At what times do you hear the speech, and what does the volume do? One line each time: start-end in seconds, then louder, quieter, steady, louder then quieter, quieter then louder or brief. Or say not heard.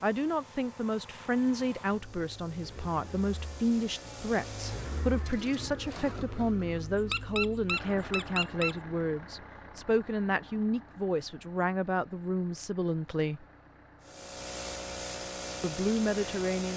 0.0-13.4 steady
15.6-16.7 brief.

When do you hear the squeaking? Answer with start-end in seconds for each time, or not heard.
7.0-8.8.